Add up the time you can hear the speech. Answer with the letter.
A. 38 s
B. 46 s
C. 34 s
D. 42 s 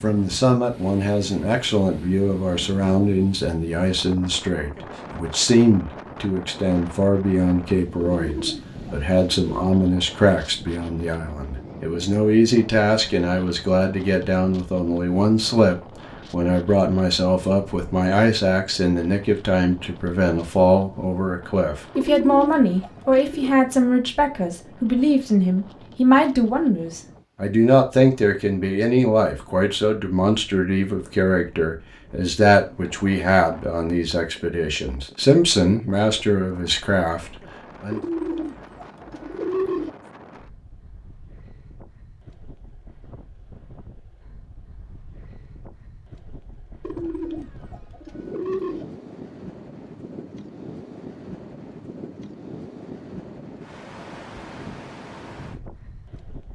A.